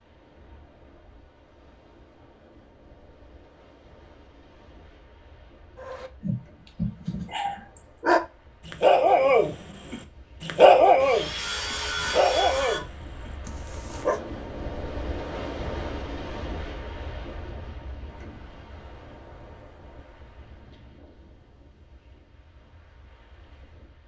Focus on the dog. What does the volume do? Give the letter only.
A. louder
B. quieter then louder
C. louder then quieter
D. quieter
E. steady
C.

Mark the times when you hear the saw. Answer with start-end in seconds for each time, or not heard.
10.9-12.8.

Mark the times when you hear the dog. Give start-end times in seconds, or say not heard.
5.8-14.2.